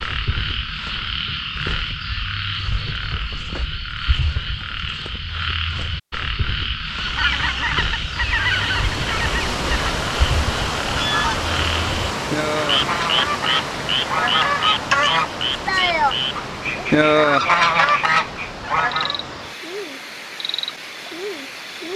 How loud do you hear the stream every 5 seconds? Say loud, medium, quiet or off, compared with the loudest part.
off, loud, loud, medium, medium.